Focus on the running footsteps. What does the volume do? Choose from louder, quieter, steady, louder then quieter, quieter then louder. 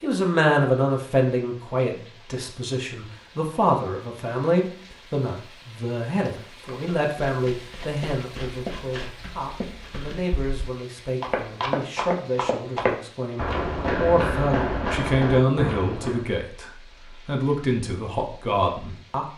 louder.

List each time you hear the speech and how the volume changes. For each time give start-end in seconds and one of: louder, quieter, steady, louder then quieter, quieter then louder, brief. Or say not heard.
0.0-19.2 quieter then louder.